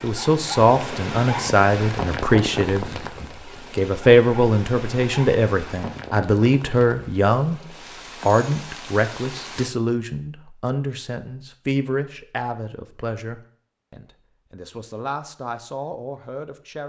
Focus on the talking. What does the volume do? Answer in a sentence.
The loudness of the talking goes down.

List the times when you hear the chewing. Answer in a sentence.
You can't hear the chewing here.